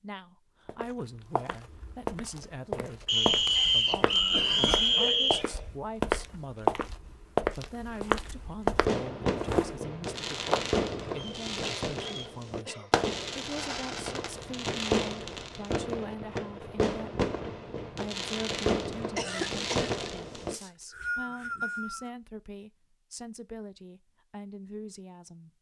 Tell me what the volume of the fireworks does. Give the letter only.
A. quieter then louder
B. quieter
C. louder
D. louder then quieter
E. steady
E.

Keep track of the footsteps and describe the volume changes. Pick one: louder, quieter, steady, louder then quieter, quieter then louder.
louder.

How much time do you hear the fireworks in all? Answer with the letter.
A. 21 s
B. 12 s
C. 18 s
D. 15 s
B.